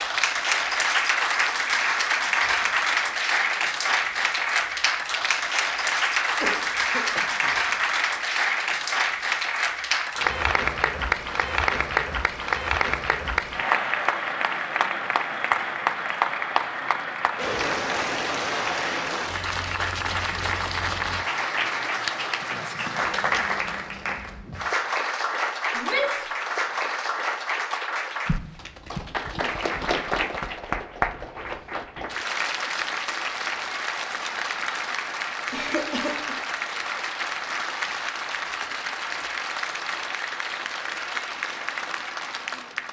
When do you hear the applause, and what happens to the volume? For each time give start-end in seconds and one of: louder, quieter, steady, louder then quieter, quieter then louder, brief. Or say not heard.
0.0-42.8 quieter.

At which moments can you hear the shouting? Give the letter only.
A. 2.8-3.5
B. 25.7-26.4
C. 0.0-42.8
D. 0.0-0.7
B.